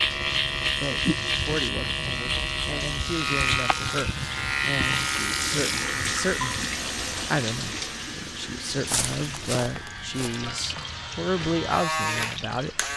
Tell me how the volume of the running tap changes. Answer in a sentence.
The loudness of the running tap goes up, then down.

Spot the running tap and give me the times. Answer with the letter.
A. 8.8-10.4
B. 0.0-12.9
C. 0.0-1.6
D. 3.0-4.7
B.